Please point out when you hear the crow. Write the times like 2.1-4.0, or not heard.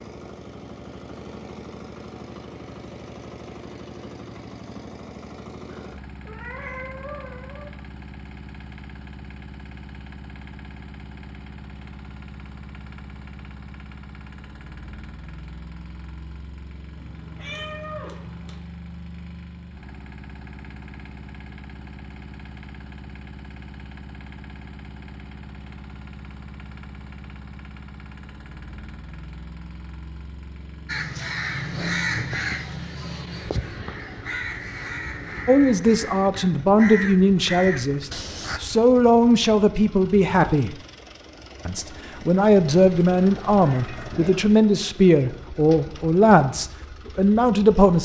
30.9-38.6.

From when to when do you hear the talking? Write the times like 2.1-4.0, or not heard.
35.5-40.8, 41.6-47.9.